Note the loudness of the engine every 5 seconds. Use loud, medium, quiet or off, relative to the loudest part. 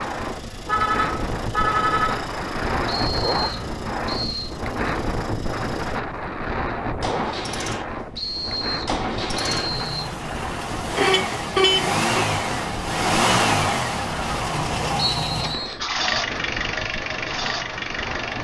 quiet, medium, loud, loud.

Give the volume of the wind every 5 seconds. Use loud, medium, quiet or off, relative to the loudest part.
loud, loud, medium, medium.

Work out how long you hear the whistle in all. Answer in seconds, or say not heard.
4 s.